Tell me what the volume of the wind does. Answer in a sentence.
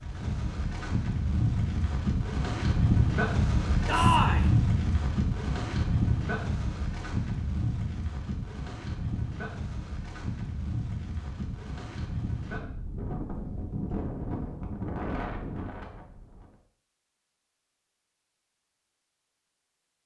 The volume of the wind goes down.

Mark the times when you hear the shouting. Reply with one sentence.
The shouting can be heard from 3.9 to 4.5 s.